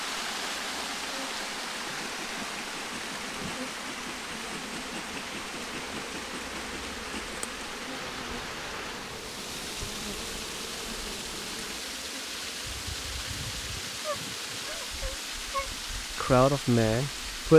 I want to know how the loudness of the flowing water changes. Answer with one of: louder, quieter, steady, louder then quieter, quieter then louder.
steady.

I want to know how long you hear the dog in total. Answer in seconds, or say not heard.
2 s.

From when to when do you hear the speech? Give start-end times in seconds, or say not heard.
16.1-17.5.